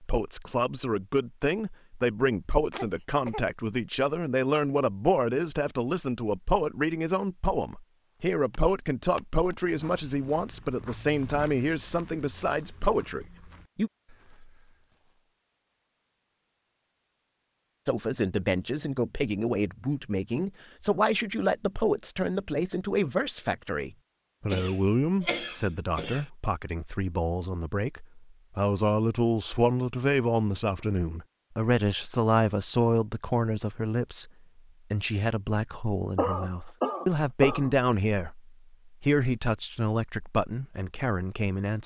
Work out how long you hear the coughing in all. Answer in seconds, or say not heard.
4 s.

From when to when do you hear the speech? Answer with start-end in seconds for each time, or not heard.
0.0-13.9, 17.9-34.3, 34.9-41.8.